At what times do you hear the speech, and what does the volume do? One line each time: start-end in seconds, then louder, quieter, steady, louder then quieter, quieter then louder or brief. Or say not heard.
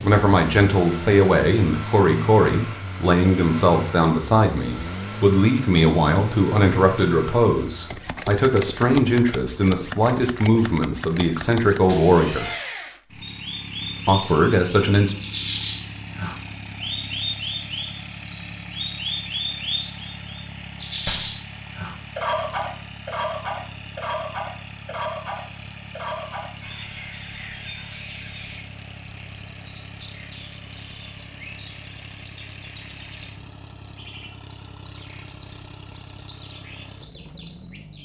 0.0-12.4 steady
14.1-15.2 brief.